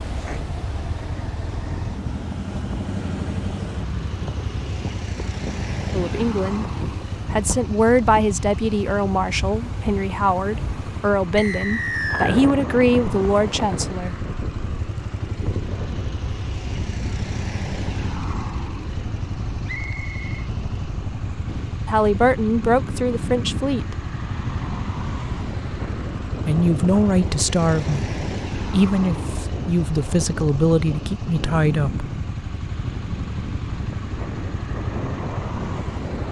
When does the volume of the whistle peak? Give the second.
12 s.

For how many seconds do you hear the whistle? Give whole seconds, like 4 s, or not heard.
2 s.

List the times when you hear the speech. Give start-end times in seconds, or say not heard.
5.9-6.7, 7.3-14.2, 21.9-23.9, 26.4-32.0.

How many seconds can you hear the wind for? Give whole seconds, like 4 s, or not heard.
36 s.